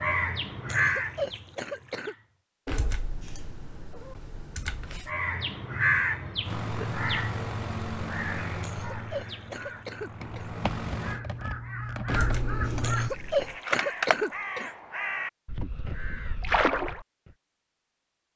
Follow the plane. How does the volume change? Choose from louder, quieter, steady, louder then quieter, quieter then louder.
quieter then louder.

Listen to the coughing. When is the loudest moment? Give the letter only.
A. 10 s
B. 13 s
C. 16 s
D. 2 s
B.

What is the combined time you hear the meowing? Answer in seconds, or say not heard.
4 s.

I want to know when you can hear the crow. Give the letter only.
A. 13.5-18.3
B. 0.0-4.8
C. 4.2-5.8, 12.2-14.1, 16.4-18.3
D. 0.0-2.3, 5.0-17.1
D.